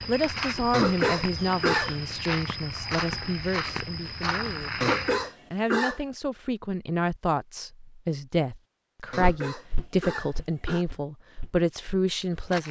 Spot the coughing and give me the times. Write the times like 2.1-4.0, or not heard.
0.7-1.9, 4.8-6.0, 9.1-10.8.